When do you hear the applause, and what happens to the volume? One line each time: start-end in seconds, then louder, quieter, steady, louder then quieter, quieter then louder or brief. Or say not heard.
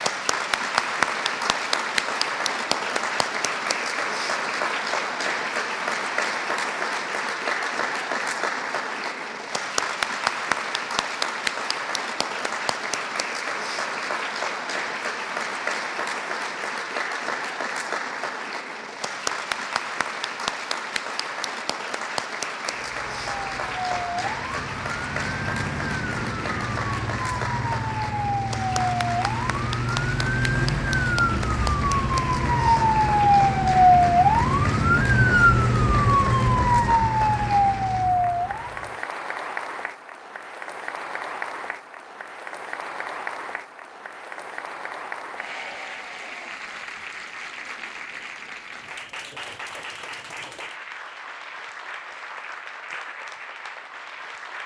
0.0-54.6 quieter.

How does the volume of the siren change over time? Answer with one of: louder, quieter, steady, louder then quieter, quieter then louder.
louder.